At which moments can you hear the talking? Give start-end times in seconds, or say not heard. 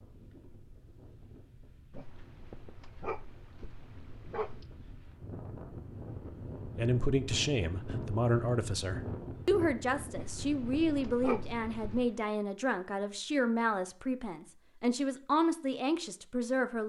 6.8-16.8.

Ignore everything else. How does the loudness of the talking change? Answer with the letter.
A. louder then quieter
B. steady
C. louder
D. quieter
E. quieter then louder
B.